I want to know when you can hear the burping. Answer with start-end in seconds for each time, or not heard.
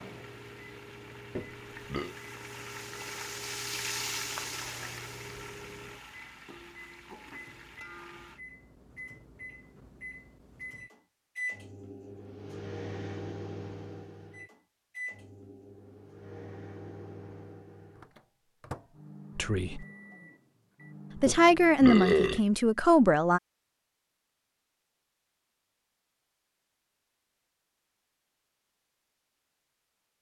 1.4-2.1, 21.2-22.4.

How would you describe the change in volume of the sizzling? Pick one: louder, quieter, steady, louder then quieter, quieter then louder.
louder then quieter.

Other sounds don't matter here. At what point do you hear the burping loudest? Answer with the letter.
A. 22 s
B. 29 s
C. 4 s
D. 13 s
A.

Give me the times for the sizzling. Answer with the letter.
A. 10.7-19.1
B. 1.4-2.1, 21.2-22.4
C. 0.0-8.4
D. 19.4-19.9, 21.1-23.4
C.